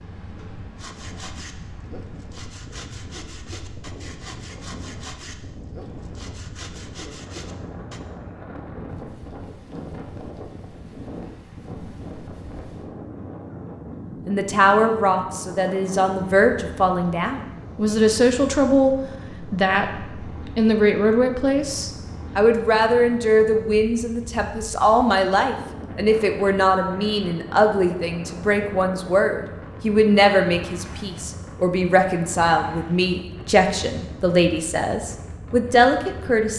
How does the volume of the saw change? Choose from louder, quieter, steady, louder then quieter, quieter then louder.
steady.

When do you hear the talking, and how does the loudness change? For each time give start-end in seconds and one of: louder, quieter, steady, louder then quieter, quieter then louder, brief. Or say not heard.
14.2-36.5 steady.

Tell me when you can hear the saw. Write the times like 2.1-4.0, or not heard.
0.8-8.0.